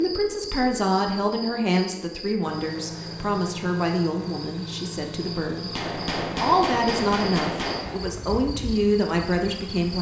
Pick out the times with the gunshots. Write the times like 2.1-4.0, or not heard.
5.7-8.1.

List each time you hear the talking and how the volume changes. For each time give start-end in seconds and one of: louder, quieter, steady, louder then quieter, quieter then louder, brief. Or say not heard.
0.0-9.9 quieter then louder.